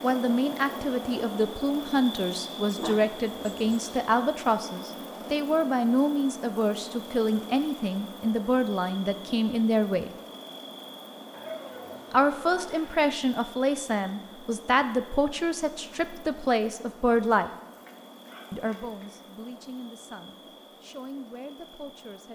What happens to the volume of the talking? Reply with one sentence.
The volume of the talking goes down.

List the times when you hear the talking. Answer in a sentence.
You can hear the talking from 0.0 to 10.1 s, from 12.1 to 17.5 s and from 18.5 to 22.3 s.